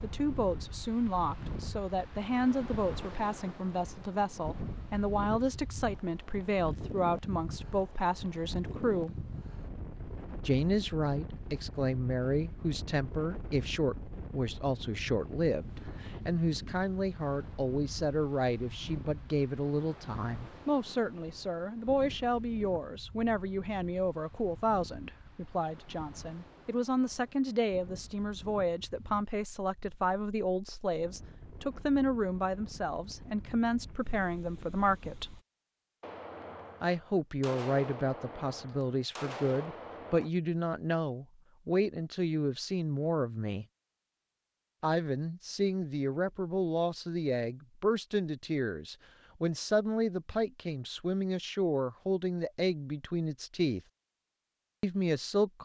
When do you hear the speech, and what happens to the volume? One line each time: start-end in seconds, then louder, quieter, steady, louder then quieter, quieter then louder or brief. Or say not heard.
0.0-9.2 steady
10.4-35.3 steady
36.8-43.6 steady
44.8-53.8 steady
54.8-55.6 brief.